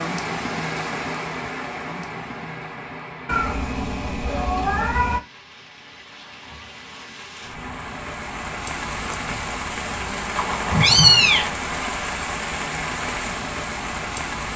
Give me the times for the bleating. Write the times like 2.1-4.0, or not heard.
not heard.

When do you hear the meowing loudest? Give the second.
11 s.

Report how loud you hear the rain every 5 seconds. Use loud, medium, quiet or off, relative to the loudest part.
loud, medium, loud.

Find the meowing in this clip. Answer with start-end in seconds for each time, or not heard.
3.2-5.2, 10.3-11.5.